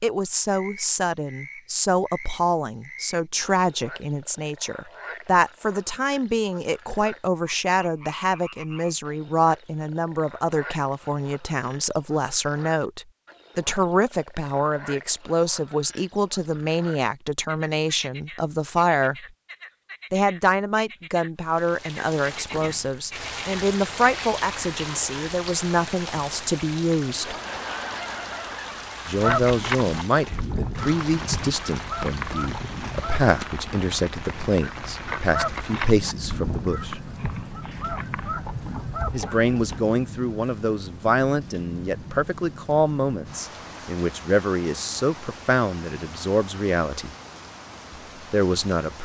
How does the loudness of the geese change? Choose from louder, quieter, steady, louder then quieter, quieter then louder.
quieter.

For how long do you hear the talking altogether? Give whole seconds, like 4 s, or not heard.
43 s.